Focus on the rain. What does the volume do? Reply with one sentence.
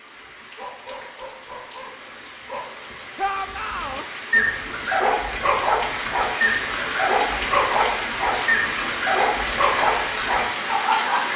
The loudness of the rain goes up.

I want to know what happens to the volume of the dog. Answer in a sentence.
The volume of the dog goes up.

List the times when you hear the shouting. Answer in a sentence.
The shouting can be heard from 3.1 to 4.0 s.